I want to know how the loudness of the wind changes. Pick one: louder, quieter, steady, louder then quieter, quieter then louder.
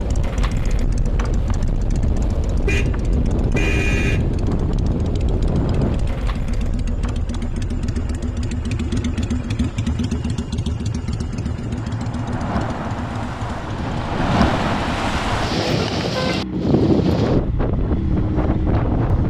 quieter then louder.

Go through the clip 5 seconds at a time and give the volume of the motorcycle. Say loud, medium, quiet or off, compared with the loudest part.
medium, loud, loud, loud.